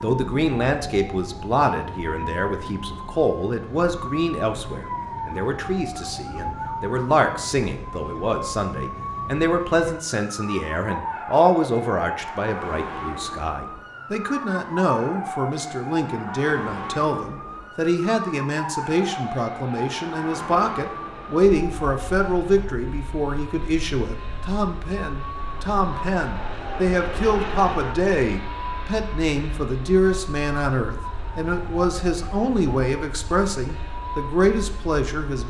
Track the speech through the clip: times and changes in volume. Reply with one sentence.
You can hear the speech from 0.0 to 35.4 s, at a steady volume.